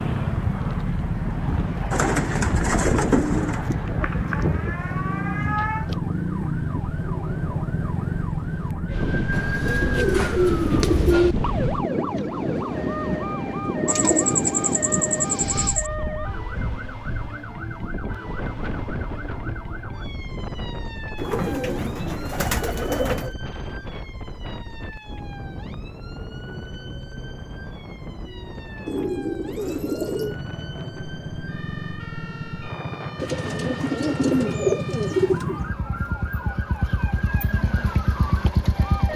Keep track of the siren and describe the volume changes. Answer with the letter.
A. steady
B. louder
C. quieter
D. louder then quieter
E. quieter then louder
E.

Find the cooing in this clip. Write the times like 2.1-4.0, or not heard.
1.9-3.6, 9.3-11.3, 13.8-15.9, 21.1-23.3, 28.9-30.4, 33.2-35.6.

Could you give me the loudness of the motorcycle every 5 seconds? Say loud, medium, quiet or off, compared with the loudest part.
loud, loud, off, off, off, off, medium, loud.